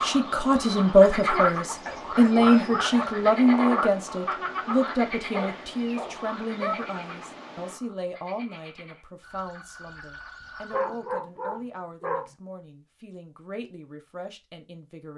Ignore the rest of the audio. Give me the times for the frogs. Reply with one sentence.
The frogs can be heard from 0.0 to 11.1 s.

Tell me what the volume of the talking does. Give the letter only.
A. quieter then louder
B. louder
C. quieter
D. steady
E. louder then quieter
C.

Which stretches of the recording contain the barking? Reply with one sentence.
The barking can be heard from 1.9 to 3.2 s, from 5.3 to 6.9 s and from 10.7 to 12.3 s.